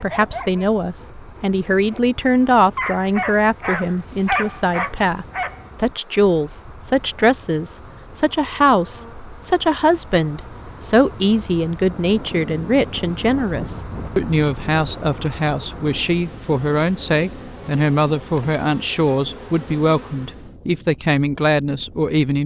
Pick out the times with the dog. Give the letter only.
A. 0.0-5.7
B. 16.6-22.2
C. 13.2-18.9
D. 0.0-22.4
A.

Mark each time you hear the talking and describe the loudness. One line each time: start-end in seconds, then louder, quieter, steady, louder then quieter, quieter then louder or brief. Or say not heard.
0.0-22.4 steady.